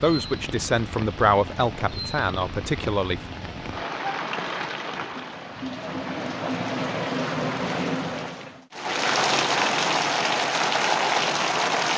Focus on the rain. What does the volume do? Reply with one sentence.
The loudness of the rain goes up.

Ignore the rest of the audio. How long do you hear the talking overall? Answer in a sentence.
The talking can be heard for 3 seconds in total.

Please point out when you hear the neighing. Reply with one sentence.
The neighing can't be heard in this clip.